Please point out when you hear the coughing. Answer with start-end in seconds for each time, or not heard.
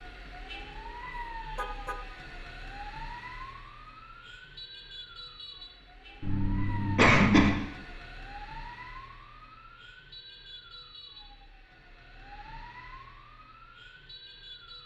6.2-7.5.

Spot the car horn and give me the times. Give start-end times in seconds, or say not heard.
1.6-2.0.